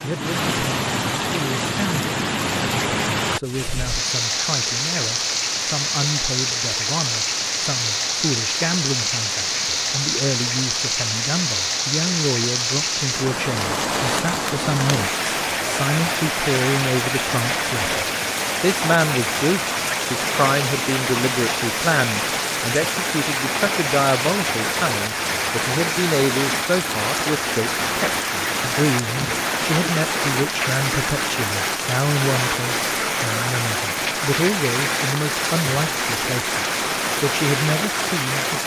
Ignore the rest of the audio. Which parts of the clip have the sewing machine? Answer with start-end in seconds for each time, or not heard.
not heard.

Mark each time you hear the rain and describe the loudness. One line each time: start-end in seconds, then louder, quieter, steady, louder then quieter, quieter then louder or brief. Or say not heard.
0.0-38.6 steady.